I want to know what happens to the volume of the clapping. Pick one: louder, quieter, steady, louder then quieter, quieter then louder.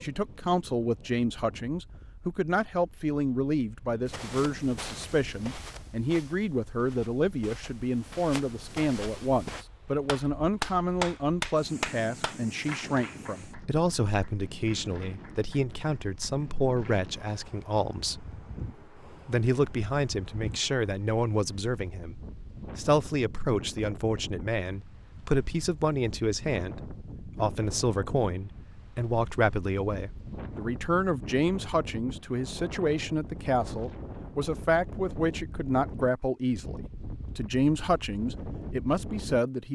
quieter.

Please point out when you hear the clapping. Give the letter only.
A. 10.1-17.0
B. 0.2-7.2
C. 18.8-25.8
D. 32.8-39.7
A.